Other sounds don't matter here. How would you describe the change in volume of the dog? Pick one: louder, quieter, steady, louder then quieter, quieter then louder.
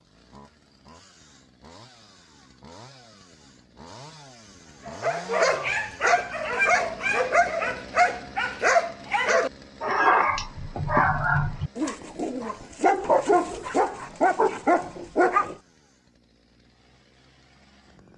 steady.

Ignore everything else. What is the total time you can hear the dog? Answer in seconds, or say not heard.
11 s.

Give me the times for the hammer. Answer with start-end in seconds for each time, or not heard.
not heard.